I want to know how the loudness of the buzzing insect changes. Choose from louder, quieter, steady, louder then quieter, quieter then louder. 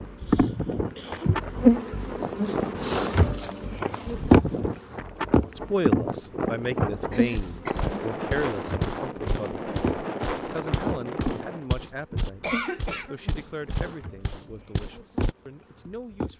quieter.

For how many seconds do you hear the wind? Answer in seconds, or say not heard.
12 s.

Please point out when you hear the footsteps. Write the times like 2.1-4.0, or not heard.
7.3-15.3.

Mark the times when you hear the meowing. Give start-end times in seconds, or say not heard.
not heard.